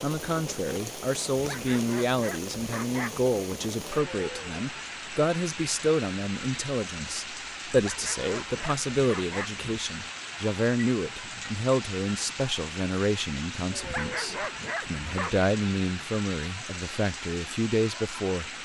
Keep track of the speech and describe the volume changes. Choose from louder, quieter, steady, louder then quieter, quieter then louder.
steady.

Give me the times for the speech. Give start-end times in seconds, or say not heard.
0.0-18.5.